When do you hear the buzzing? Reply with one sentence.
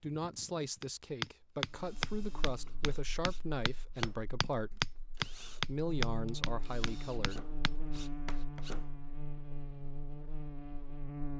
The buzzing can be heard from 1.6 to 11.3 s.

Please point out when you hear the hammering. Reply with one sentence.
The hammering can be heard from 0.8 to 8.6 s.